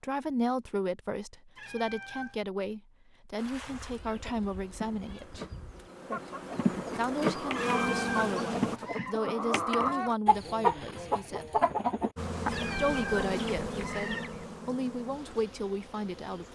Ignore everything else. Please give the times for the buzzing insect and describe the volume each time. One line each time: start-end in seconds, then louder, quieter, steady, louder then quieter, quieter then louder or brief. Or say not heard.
3.4-8.8 louder
12.2-16.4 quieter.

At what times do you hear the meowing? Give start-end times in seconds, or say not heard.
1.6-2.4, 7.5-9.2, 12.5-14.3.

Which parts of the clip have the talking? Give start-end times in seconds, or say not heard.
0.0-5.5, 7.0-11.5, 12.8-16.4.